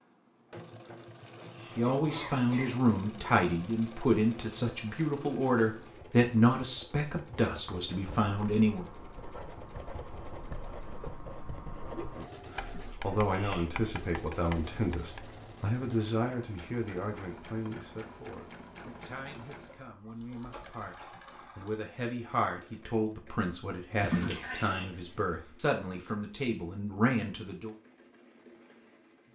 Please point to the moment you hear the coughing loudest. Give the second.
24 s.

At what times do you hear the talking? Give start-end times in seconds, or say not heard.
1.8-8.8, 12.2-27.8.